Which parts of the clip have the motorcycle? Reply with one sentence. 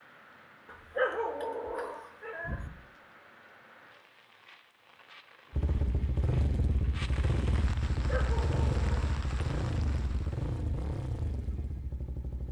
The motorcycle can be heard from 5.5 to 12.4 s.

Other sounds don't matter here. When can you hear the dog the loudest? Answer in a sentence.
The volume of the dog peaks at 1 second.